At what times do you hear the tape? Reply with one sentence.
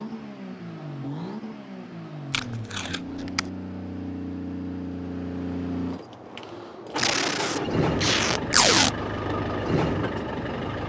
The tape can be heard from 2.3 to 3.5 s and from 7.0 to 8.9 s.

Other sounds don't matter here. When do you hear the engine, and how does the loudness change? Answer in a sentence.
You can hear the engine from 0.0 to 10.8 s, getting louder.